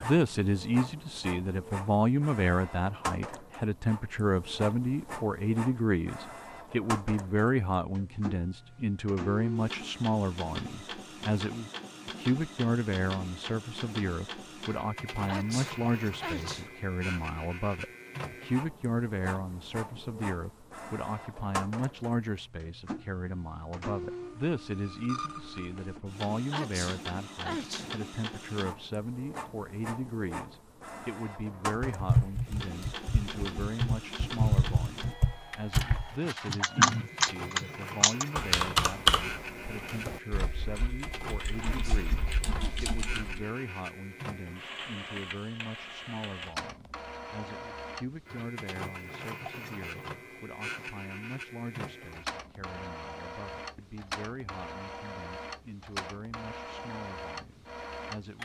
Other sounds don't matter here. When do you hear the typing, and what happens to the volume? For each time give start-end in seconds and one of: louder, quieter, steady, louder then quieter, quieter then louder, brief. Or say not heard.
31.8-43.5 louder then quieter.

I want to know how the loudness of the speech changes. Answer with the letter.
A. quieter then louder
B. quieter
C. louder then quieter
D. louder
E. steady
B.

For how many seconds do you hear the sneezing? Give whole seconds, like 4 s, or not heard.
4 s.